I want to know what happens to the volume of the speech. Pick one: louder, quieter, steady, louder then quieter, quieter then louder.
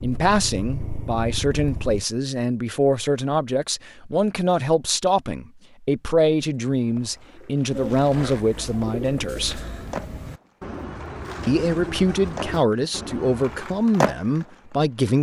steady.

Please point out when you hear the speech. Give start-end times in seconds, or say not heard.
0.0-9.7, 11.4-15.1.